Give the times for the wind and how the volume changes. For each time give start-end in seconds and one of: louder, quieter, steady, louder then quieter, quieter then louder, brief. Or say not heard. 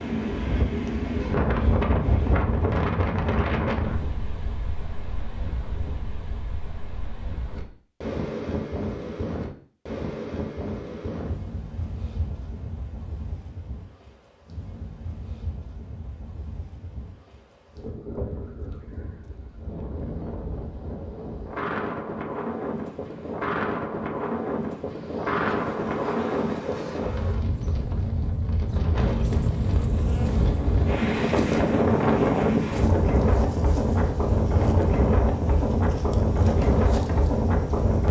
0.0-38.0 quieter then louder.